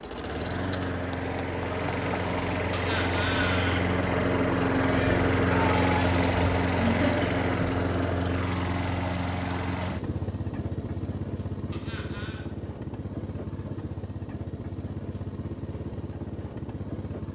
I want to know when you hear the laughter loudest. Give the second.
7 s.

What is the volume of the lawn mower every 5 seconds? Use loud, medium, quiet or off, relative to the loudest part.
loud, loud, medium, medium.